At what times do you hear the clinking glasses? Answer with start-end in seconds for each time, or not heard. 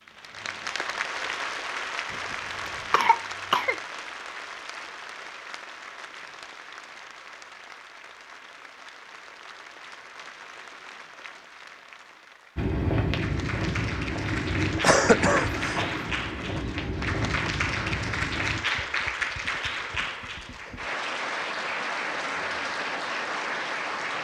not heard.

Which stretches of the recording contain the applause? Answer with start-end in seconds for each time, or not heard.
0.1-24.2.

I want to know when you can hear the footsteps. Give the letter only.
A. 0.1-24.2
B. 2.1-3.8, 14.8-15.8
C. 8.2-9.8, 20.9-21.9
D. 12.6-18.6
D.